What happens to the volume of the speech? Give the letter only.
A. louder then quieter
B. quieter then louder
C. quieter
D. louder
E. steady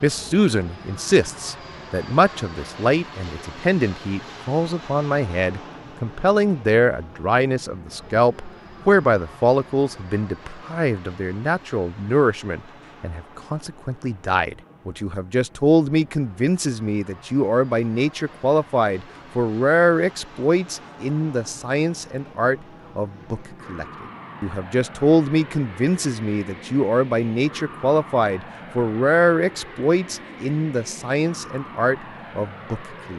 E.